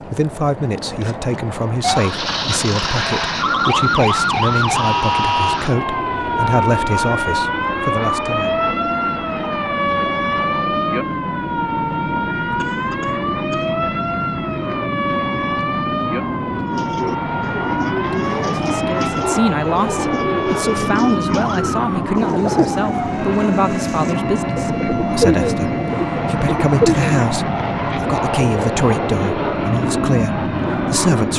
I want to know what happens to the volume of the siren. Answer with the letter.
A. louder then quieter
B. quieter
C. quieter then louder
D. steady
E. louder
B.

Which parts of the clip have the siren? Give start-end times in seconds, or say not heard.
1.8-31.3.